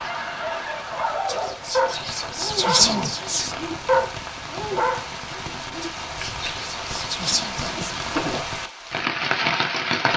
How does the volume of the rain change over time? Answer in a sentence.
The loudness of the rain goes up.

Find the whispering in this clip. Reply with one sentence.
The whispering can be heard from 1.2 to 3.5 s and from 5.8 to 7.9 s.